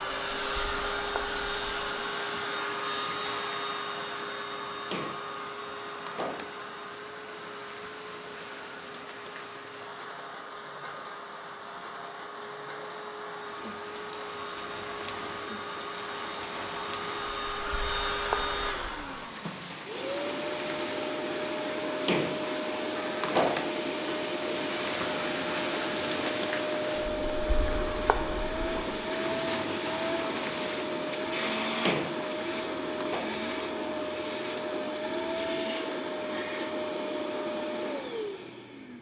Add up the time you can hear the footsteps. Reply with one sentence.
You can't hear the footsteps here.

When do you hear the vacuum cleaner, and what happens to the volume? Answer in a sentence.
You can hear the vacuum cleaner from 0.0 to 38.9 s, getting quieter then louder.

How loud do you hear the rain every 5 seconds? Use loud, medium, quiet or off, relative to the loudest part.
medium, medium, medium, medium, loud, loud, loud, off.